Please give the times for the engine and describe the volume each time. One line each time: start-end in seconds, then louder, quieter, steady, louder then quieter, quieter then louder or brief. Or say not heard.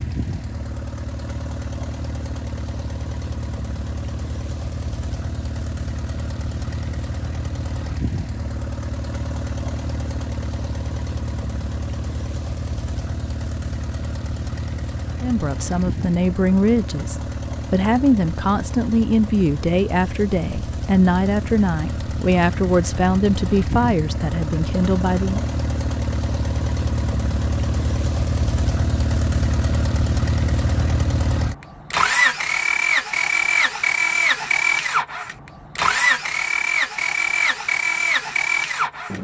0.0-39.1 louder.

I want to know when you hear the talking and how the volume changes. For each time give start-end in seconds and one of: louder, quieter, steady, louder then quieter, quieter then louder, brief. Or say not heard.
15.2-25.4 steady.